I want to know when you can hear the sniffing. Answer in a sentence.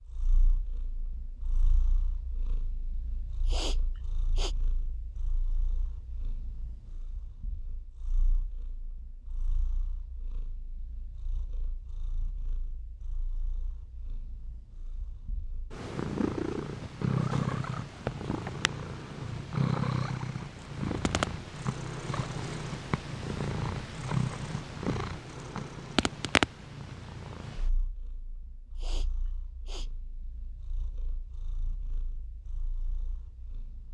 The sniffing can be heard from 3.5 to 4.5 s and from 28.8 to 29.9 s.